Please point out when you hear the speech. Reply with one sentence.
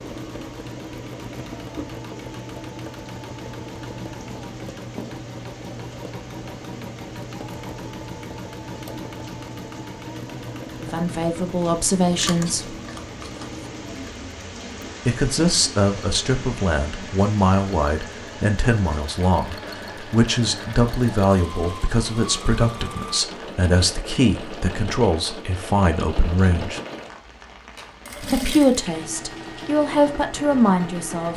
The speech can be heard from 10.8 to 12.8 s, from 15.1 to 26.8 s and from 28.2 to 31.3 s.